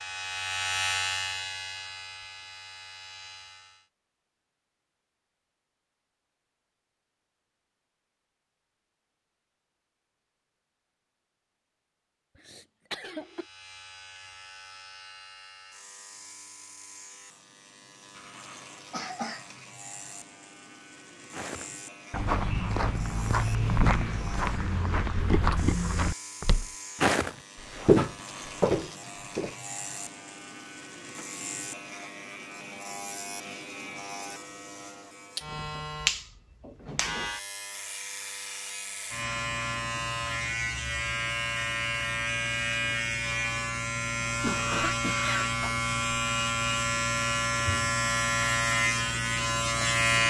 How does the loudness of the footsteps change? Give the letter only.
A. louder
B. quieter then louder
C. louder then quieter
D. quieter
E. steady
A.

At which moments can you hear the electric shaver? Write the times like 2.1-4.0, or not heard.
0.0-3.9, 13.2-50.2.